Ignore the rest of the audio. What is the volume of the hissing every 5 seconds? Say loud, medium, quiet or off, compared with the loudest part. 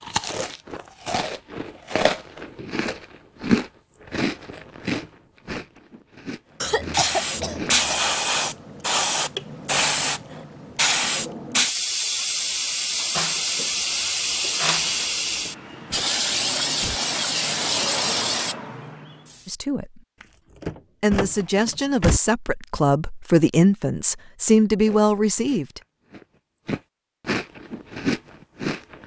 off, loud, loud, loud, off, off.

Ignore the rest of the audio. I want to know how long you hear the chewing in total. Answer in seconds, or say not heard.
12 s.